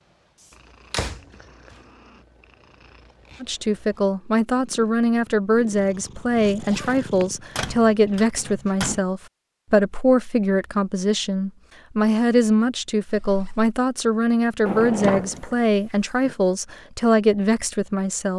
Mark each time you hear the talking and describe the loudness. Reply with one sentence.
You can hear the talking from 3.4 to 18.3 s, at a steady volume.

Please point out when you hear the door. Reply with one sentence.
The door can be heard from 0.9 to 1.8 s, from 7.5 to 9.0 s and from 14.7 to 16.4 s.